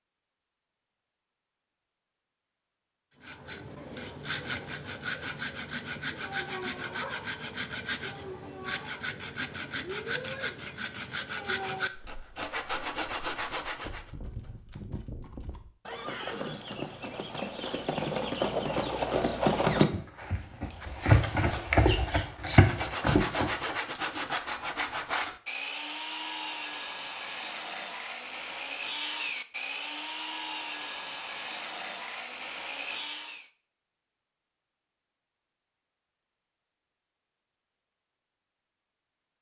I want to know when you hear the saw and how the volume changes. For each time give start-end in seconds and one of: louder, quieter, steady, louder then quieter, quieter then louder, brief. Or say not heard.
3.2-14.1 steady
22.5-33.5 steady.